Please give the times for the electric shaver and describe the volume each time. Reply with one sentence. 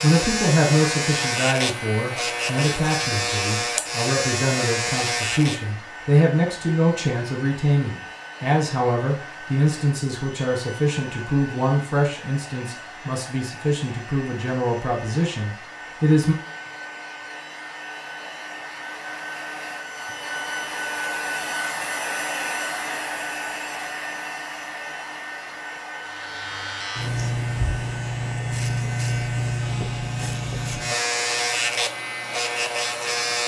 You can hear the electric shaver from 0.0 to 5.7 s, at a steady volume; and from 26.0 to 33.4 s, at a steady volume.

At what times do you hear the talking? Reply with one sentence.
You can hear the talking from 0.0 to 16.4 s.